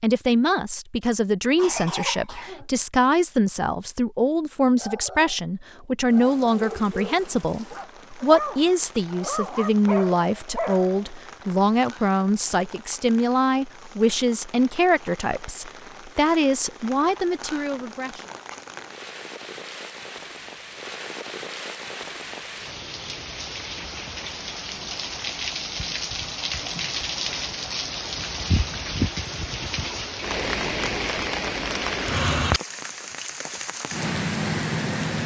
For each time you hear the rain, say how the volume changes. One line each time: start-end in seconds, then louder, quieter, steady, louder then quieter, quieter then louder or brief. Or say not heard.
6.0-35.2 louder.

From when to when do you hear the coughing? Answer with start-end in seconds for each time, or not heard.
1.6-2.6.